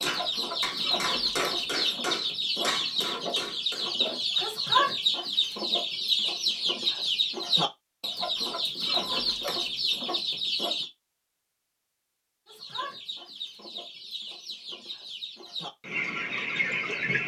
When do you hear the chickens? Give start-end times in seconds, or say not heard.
0.0-10.9, 12.4-17.2.